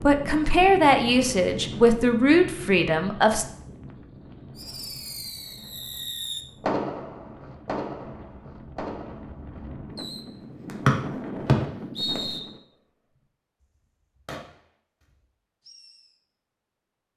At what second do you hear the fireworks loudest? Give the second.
7 s.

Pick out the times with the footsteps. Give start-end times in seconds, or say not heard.
not heard.